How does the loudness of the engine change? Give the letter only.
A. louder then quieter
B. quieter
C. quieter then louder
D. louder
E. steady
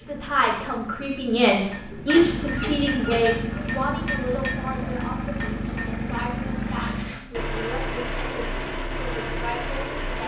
D.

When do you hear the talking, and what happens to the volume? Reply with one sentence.
The talking can be heard from 0.0 to 10.2 s, getting quieter.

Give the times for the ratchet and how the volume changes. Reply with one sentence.
You can't hear the ratchet here.